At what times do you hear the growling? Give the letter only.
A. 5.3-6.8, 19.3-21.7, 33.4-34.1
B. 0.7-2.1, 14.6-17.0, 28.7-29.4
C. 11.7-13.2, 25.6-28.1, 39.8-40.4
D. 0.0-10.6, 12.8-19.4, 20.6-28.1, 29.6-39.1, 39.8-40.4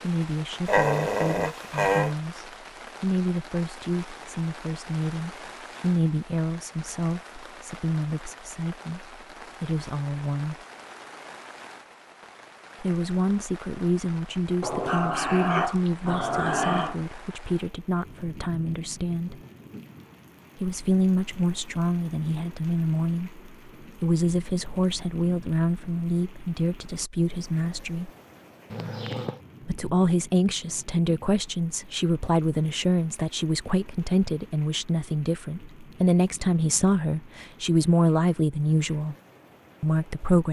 B.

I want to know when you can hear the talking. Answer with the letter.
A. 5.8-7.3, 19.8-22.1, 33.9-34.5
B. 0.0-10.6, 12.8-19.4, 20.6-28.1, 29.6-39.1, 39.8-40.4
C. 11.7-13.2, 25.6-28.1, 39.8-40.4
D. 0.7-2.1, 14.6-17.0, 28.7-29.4
B.